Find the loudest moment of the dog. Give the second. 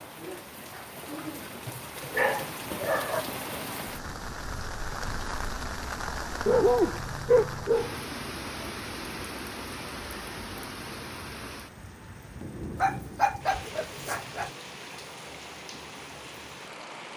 7 s.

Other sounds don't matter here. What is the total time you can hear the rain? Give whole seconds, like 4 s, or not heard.
17 s.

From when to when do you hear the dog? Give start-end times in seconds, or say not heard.
1.6-3.2, 6.5-8.2, 12.8-14.5.